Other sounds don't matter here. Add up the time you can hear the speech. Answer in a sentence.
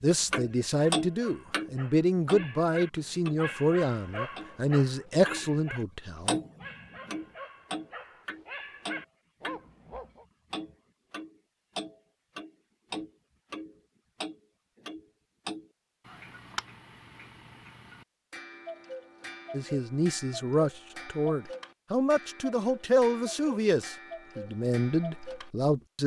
The speech can be heard for 13 seconds in total.